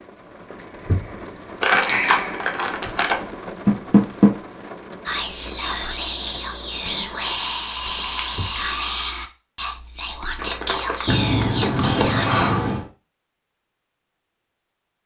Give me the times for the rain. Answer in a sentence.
You can hear the rain from 0.0 to 8.8 s.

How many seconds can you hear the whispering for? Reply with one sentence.
The whispering can be heard for 7 seconds in total.